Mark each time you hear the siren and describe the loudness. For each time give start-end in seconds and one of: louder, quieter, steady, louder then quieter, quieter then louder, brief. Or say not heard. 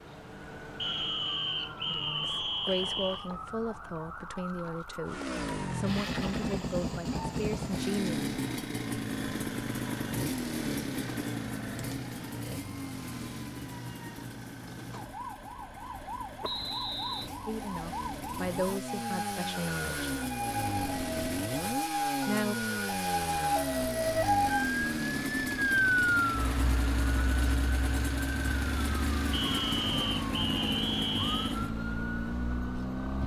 0.0-33.2 louder then quieter.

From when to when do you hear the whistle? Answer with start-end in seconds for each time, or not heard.
0.8-3.3, 16.4-17.3, 29.3-31.6.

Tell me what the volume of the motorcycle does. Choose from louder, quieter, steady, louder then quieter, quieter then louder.
quieter then louder.